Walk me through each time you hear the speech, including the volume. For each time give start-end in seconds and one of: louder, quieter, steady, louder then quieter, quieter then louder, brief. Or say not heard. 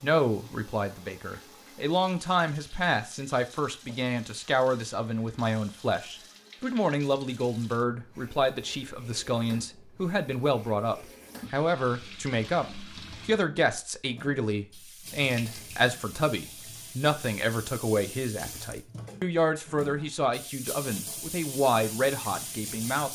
0.0-23.1 steady.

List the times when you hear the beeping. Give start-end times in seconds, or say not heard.
not heard.